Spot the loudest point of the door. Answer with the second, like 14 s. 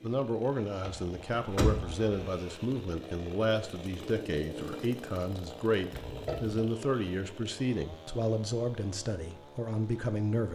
2 s.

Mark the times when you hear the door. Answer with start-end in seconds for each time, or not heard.
0.8-2.0, 5.9-6.6.